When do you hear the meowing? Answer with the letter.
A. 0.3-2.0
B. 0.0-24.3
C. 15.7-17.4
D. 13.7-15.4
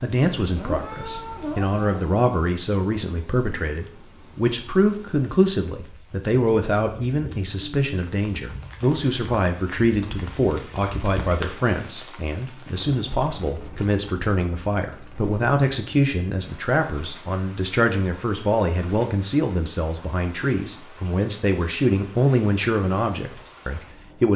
A.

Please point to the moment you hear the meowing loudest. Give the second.
1 s.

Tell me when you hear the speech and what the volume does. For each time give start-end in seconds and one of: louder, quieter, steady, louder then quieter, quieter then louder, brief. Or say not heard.
0.0-24.3 steady.